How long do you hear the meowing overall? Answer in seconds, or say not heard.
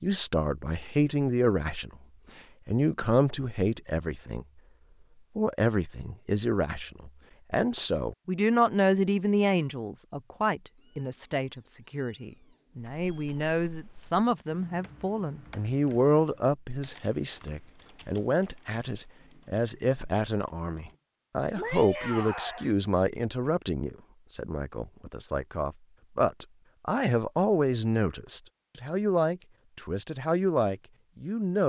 4 s.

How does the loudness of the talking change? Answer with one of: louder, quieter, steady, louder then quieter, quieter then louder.
steady.